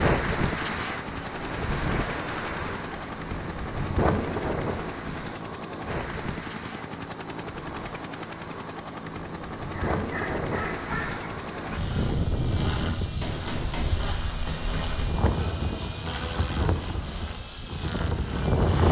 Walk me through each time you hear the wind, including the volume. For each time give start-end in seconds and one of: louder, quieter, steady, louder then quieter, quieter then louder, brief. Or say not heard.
0.0-18.8 steady.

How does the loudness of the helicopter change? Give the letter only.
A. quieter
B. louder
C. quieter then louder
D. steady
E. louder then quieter
D.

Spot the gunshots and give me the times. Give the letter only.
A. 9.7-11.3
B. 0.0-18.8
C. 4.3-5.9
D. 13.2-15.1
D.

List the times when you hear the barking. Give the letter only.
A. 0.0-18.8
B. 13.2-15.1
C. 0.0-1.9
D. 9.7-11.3
D.